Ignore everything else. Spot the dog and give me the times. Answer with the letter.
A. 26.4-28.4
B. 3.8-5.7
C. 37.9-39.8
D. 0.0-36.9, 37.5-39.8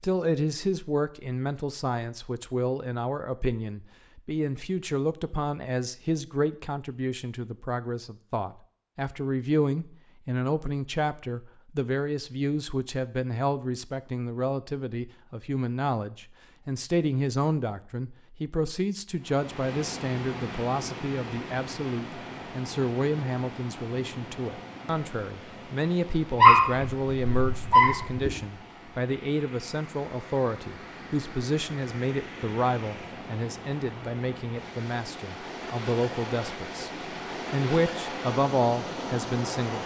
A.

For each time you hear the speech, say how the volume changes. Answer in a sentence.
You can hear the speech from 0.0 to 36.9 s, at a steady volume; and briefly from 37.5 to 39.8 s.